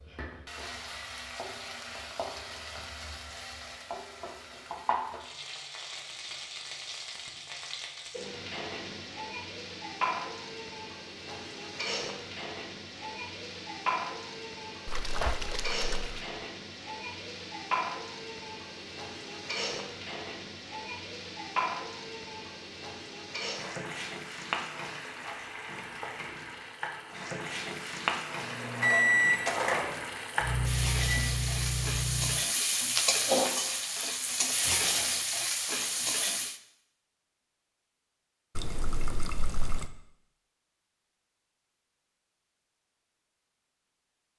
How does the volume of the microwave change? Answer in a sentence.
The loudness of the microwave goes down.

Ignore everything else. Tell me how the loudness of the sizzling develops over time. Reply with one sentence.
The loudness of the sizzling goes up.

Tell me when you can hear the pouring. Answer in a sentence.
You can hear the pouring from 14.8 to 16.2 s and from 38.5 to 39.9 s.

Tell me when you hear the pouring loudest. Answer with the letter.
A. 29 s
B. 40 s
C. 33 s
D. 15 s
D.